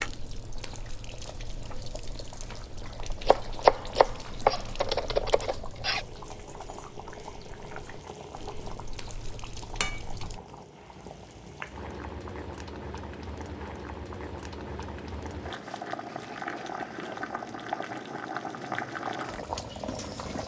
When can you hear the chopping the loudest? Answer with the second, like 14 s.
4 s.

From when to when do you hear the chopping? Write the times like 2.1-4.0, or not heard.
3.2-6.0.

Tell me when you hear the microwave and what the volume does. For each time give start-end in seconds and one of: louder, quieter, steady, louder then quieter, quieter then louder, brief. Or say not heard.
not heard.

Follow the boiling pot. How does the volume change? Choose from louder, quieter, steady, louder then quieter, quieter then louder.
louder.